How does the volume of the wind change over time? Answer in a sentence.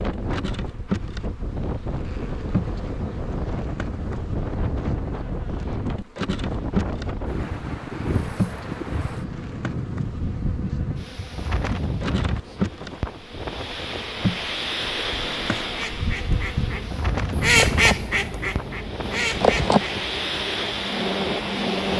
The loudness of the wind stays about the same.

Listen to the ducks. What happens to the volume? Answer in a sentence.
The volume of the ducks goes up, then down.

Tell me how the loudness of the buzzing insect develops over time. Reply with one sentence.
The volume of the buzzing insect goes up.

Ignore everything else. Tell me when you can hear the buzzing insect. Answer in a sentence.
You can hear the buzzing insect from 0.0 to 21.9 s.